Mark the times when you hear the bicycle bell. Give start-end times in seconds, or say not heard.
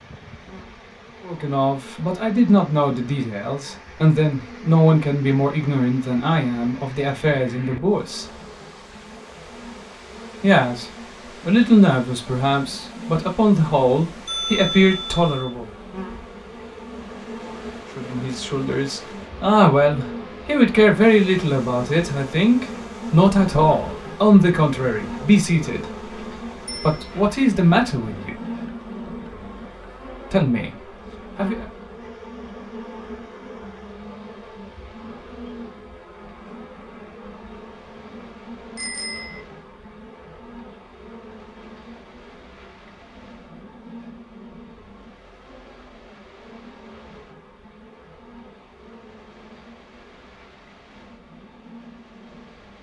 14.2-15.3, 26.6-27.1, 38.8-39.4.